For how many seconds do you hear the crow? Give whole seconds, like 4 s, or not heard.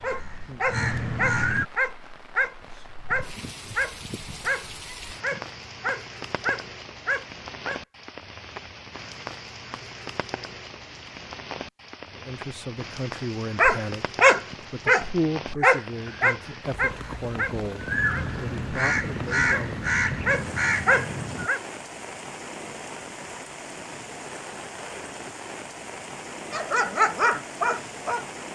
8 s.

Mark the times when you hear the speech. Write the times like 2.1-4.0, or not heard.
12.2-19.9.